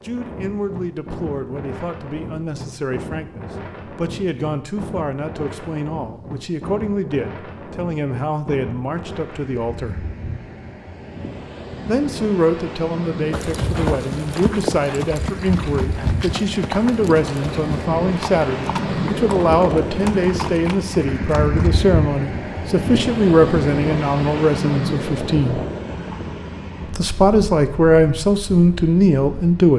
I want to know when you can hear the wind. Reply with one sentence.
You can hear the wind from 0.0 to 29.7 s.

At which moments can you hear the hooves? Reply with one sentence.
You can hear the hooves from 13.3 to 21.7 s.